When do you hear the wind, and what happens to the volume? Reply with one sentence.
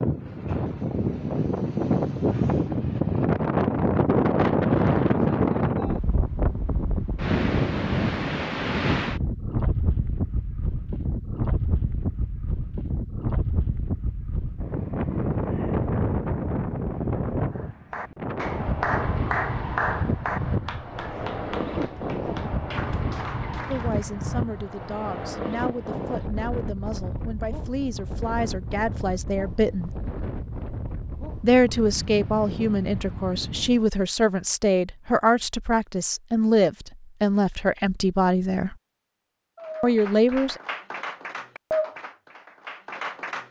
The wind can be heard from 0.0 to 33.9 s, getting quieter.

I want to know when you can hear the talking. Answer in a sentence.
The talking can be heard from 23.6 to 29.9 s, from 31.4 to 38.8 s and from 39.8 to 40.6 s.